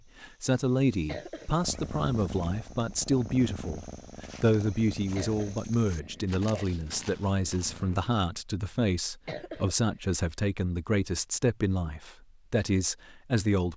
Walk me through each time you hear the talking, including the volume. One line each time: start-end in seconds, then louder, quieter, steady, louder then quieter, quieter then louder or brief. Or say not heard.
0.2-13.7 steady.